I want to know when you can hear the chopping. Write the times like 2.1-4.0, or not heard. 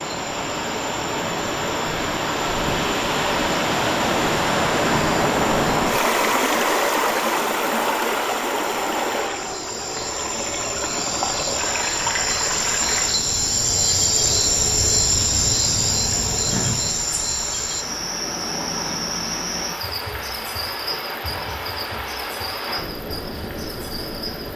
not heard.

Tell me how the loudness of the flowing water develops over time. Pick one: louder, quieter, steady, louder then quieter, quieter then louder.
quieter.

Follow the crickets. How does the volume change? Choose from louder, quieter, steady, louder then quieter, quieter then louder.
louder then quieter.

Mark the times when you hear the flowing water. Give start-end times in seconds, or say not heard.
0.0-24.5.